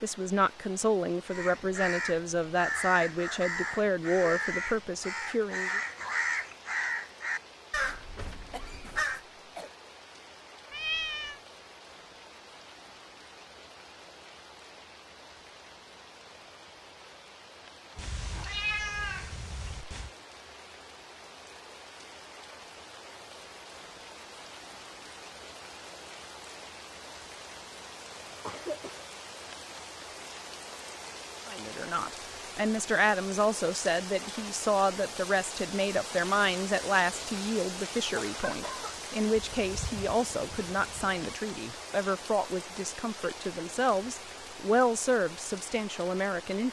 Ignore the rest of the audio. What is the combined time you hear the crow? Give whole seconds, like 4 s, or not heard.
8 s.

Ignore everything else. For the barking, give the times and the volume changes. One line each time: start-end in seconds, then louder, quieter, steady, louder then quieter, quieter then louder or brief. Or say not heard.
not heard.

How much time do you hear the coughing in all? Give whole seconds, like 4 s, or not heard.
3 s.